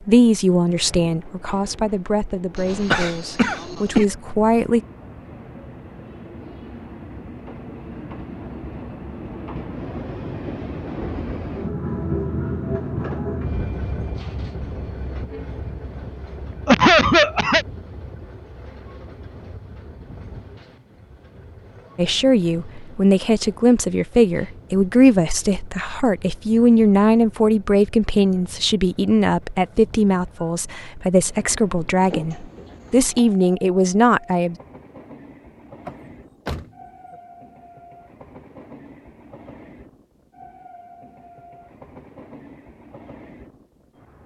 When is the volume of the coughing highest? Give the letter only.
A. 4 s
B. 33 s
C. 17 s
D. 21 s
C.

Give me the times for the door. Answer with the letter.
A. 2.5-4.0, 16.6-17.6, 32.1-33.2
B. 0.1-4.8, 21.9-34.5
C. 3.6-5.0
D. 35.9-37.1
D.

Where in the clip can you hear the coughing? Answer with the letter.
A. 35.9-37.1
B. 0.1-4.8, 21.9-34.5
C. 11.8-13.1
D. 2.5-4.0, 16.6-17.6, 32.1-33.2
D.